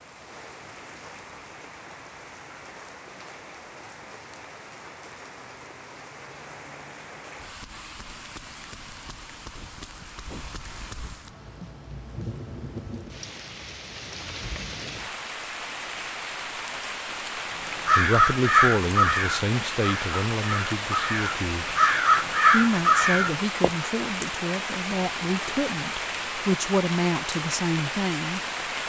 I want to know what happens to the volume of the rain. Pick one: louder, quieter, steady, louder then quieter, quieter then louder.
louder.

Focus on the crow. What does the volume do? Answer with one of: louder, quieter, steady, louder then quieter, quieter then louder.
quieter then louder.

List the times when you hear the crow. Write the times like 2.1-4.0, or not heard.
17.9-23.7.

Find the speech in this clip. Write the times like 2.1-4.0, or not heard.
17.9-21.8, 22.5-28.4.